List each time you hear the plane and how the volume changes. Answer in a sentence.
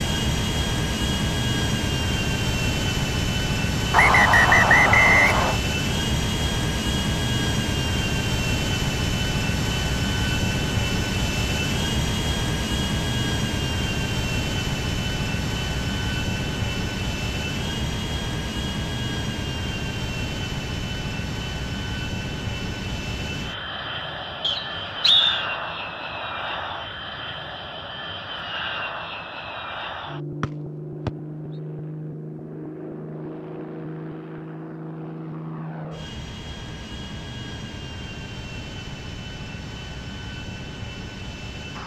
You can hear the plane from 0.0 to 41.8 s, getting quieter.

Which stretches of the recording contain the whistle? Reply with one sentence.
You can hear the whistle from 3.9 to 5.5 s, from 24.4 to 25.4 s and from 30.4 to 31.1 s.